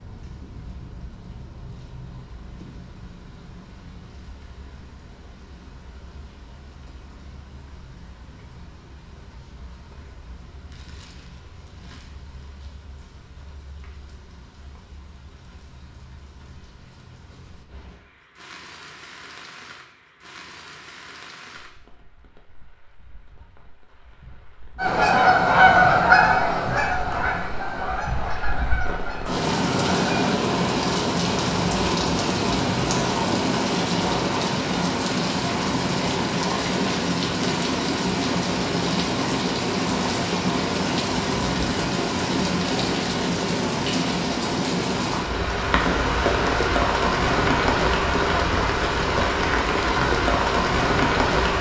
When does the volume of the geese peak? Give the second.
26 s.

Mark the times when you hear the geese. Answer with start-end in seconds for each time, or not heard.
24.8-30.4.